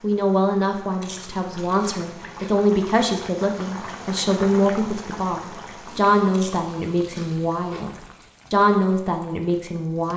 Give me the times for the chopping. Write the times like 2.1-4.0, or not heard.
not heard.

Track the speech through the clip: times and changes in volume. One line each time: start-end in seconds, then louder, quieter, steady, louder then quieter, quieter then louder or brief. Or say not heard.
0.0-7.9 steady
8.5-10.1 brief.